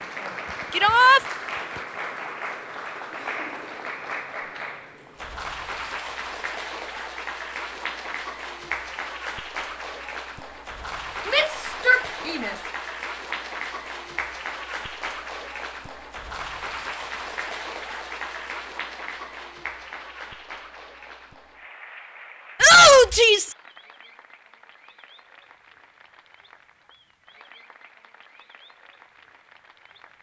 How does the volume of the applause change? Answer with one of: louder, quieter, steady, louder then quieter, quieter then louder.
quieter.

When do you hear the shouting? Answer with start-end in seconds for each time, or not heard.
0.7-1.2, 11.2-12.6, 22.6-23.6.